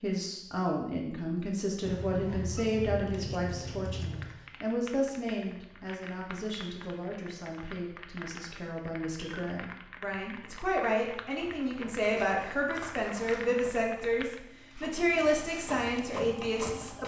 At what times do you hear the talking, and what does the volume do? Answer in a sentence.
The talking can be heard from 0.0 to 17.0 s, getting quieter then louder.